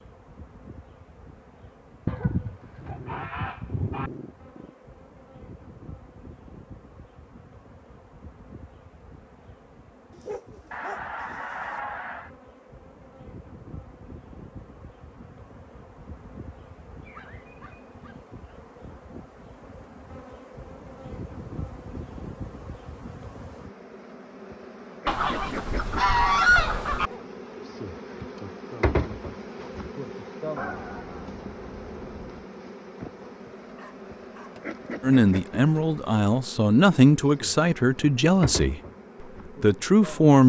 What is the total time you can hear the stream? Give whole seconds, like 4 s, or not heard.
not heard.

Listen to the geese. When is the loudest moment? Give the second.
26 s.